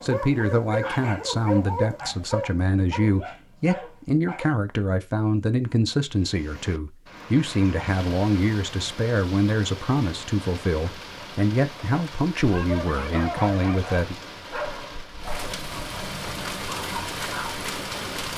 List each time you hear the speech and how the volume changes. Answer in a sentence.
You can hear the speech from 0.0 to 14.2 s, at a steady volume.